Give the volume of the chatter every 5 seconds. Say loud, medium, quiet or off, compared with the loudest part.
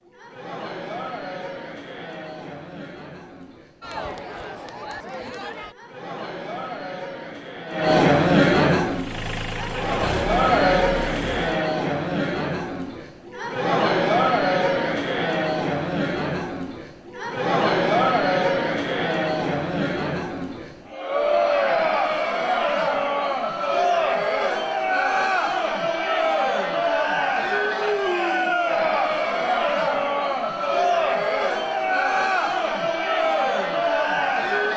quiet, loud, loud, loud, loud, loud, loud.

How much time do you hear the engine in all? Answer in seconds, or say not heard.
3 s.